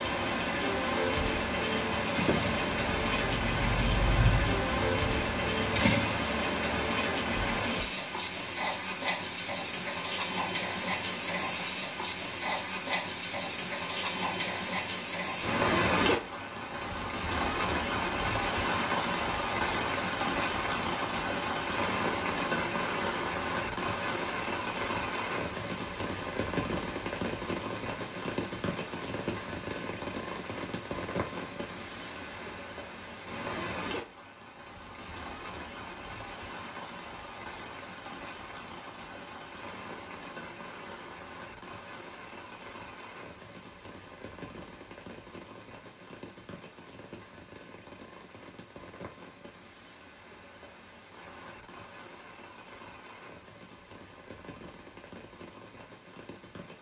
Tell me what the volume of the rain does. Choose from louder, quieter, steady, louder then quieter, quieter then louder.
quieter.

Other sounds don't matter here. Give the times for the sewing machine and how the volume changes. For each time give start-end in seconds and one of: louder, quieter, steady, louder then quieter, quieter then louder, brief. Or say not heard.
2.1-6.2 louder then quieter.